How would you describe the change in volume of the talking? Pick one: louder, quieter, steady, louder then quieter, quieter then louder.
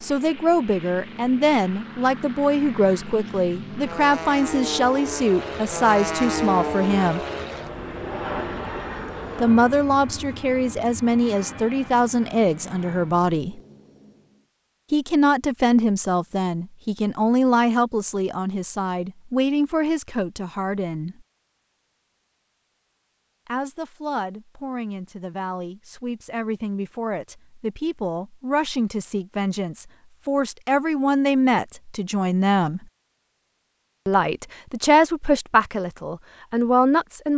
quieter then louder.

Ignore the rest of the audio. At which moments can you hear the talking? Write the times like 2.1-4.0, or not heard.
0.0-7.2, 9.4-13.6, 14.9-21.2, 23.4-32.9, 34.0-37.3.